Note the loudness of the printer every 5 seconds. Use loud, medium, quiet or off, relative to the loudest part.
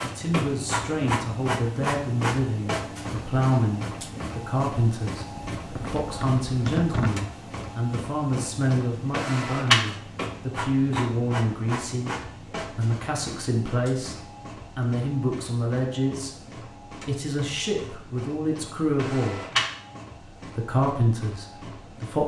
loud, loud, medium, medium, quiet.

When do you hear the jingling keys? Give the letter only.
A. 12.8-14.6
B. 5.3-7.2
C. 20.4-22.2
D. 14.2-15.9
B.